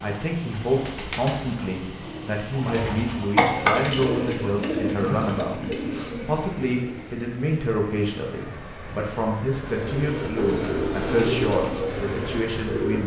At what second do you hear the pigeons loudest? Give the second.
4 s.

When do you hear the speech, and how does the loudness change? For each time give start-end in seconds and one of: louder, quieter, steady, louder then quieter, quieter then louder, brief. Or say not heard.
0.0-13.0 steady.